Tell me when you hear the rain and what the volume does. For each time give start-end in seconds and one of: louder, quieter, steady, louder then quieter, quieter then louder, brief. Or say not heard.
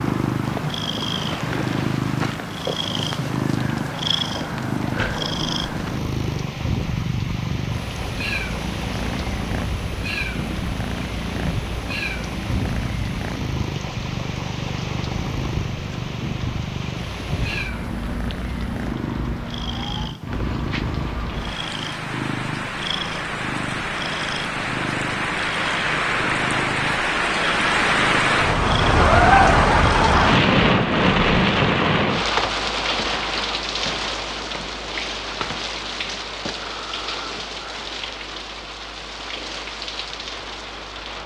0.0-41.2 louder then quieter.